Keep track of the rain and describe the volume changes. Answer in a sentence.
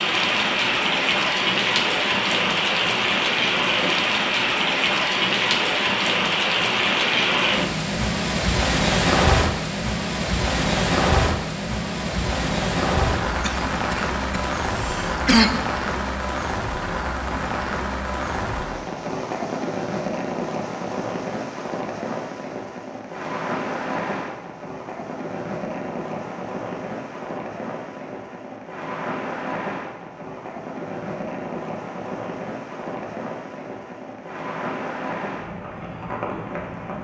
The volume of the rain goes down.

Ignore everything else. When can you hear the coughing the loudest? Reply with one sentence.
The volume of the coughing peaks at 15 seconds.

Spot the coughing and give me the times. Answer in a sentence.
You can hear the coughing from 13.2 to 15.6 s.